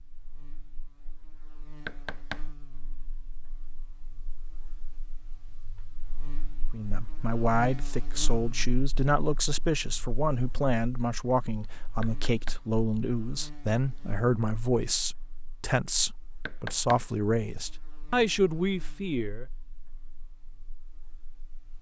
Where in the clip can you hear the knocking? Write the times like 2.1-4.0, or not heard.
1.9-2.5, 12.0-12.6, 16.4-17.1.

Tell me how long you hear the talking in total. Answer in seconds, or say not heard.
13 s.